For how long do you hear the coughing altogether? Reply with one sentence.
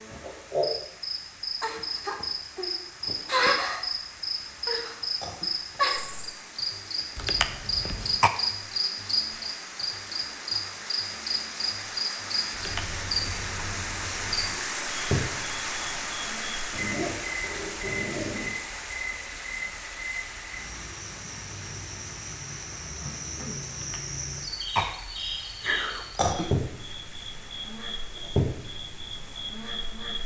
The coughing can be heard for 3 seconds in total.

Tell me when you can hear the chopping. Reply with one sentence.
The chopping can't be heard in this clip.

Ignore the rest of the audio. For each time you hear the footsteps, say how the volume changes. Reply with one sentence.
The footsteps can't be heard in this clip.